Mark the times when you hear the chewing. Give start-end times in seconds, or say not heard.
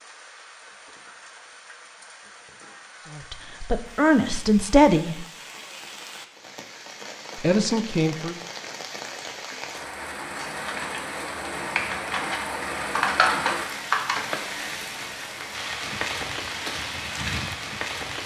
not heard.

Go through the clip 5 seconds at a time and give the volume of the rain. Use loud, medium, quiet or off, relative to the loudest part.
quiet, medium, loud, loud.